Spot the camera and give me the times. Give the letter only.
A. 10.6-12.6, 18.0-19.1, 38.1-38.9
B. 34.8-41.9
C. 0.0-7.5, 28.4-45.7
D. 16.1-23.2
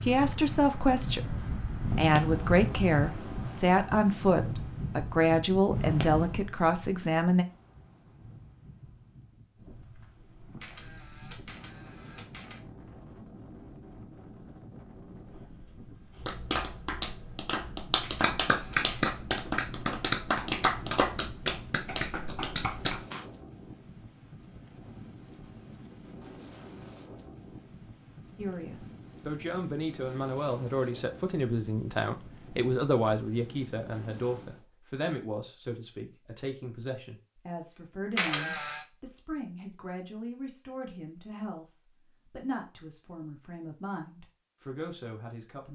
A.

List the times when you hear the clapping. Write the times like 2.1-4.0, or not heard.
16.1-23.2.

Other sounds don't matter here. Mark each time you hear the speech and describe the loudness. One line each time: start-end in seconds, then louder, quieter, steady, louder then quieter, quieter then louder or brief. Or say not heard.
0.0-7.5 steady
28.4-45.7 quieter.